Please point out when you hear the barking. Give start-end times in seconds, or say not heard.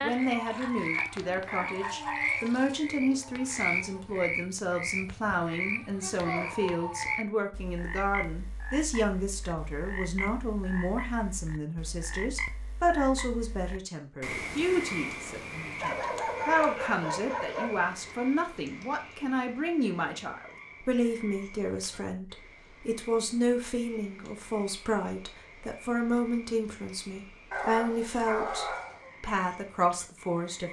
0.6-2.2, 15.8-18.1, 27.5-29.1.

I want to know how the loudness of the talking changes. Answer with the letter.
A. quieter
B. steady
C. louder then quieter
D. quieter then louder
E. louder
B.